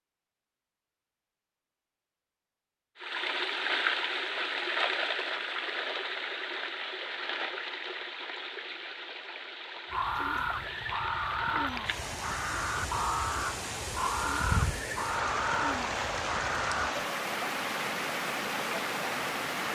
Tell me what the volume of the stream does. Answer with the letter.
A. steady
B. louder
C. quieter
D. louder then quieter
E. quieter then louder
E.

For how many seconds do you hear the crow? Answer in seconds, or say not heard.
7 s.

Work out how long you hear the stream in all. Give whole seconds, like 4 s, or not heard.
17 s.